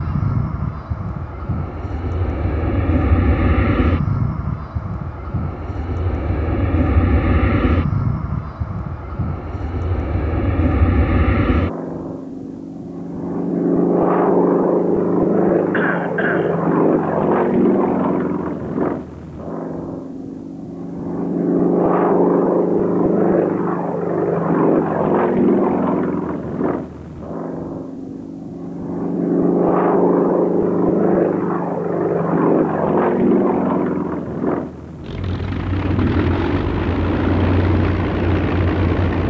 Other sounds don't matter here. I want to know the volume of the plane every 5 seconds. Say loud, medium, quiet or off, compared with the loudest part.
medium, medium, loud, loud, loud, loud, loud, loud.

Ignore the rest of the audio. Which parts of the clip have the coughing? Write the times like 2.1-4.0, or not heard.
15.7-16.6.